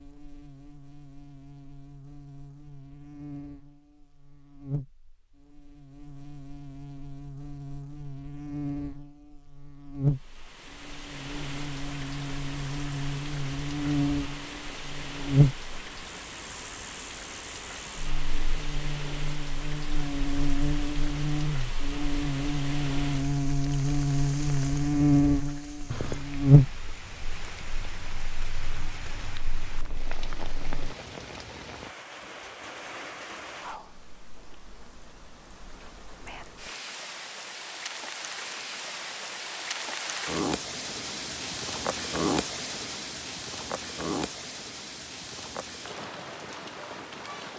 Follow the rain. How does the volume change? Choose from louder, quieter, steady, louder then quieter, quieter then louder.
louder.